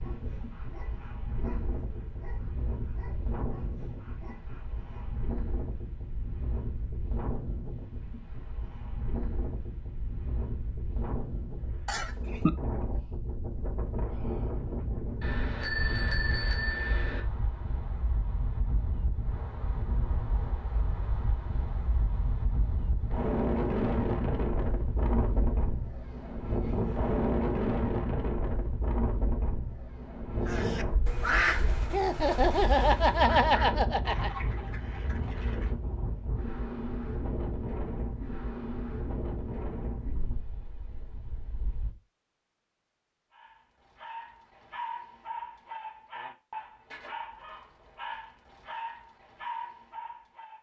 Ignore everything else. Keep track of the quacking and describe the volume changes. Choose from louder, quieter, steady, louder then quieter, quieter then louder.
quieter.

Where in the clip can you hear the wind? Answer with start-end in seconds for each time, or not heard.
0.0-42.0.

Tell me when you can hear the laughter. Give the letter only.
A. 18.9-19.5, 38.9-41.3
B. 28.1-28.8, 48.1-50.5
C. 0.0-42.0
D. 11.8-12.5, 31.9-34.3
D.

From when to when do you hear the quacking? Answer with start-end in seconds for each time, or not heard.
30.4-35.8.